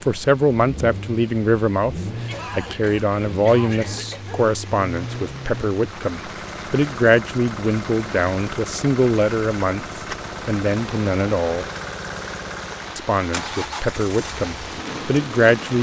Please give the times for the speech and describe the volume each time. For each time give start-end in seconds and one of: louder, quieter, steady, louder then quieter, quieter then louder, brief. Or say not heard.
0.0-11.7 steady
12.9-15.7 brief.